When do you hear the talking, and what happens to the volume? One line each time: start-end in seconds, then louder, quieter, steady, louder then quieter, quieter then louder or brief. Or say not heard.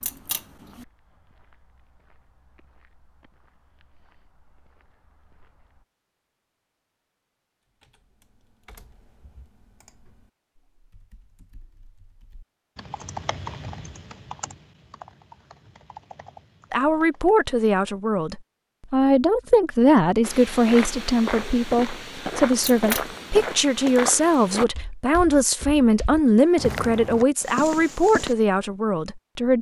16.7-29.5 steady.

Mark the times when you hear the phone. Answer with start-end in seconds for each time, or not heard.
not heard.